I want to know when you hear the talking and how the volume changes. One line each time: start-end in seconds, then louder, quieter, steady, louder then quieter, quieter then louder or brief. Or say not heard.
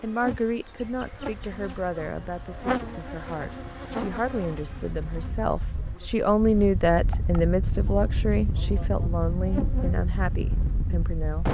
0.0-11.4 louder then quieter.